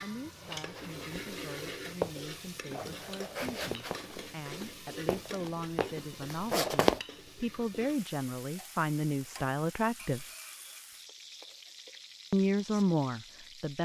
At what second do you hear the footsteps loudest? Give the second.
7 s.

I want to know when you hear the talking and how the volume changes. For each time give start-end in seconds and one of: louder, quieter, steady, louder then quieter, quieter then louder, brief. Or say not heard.
0.0-10.2 louder
12.3-13.8 brief.